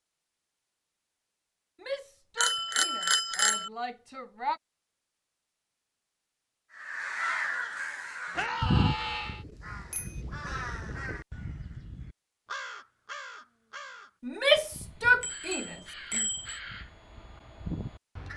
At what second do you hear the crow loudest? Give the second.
9 s.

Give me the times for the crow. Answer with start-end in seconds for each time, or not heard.
6.8-18.3.